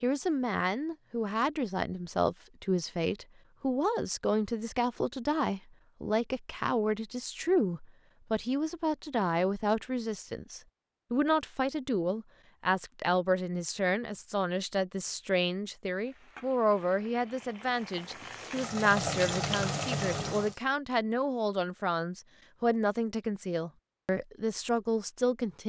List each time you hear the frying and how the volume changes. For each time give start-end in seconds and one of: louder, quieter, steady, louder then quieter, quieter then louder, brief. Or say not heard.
15.9-20.6 louder.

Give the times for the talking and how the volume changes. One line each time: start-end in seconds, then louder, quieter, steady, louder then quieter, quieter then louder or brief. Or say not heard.
0.0-25.6 steady.